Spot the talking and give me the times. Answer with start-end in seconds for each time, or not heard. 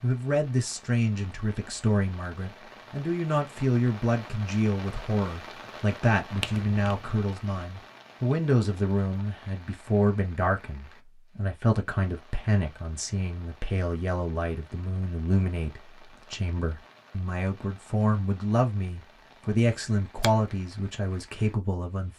0.0-22.1.